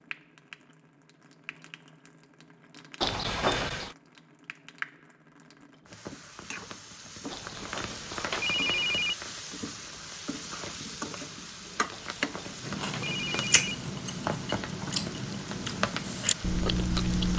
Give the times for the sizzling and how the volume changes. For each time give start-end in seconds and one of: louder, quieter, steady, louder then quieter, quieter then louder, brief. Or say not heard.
0.0-17.3 louder.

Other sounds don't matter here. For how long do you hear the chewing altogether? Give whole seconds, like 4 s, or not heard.
5 s.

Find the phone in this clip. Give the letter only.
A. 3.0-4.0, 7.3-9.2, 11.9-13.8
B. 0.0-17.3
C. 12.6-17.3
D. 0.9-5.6
A.